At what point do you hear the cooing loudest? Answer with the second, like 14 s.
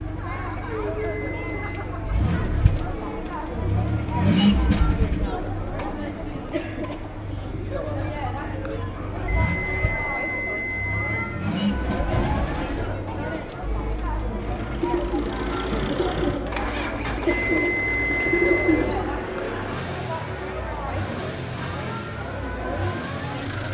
19 s.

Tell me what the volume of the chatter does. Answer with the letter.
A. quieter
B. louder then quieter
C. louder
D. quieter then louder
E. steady
E.